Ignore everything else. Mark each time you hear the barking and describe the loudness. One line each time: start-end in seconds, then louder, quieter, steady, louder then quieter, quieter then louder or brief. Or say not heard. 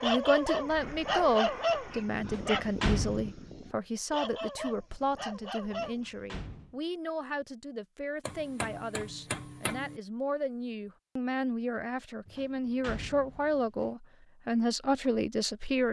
0.0-6.3 quieter then louder.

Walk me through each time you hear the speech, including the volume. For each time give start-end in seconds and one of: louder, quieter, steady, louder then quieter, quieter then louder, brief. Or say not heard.
0.0-15.8 quieter then louder.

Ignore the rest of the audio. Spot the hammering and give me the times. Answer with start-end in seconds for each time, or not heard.
8.2-10.0.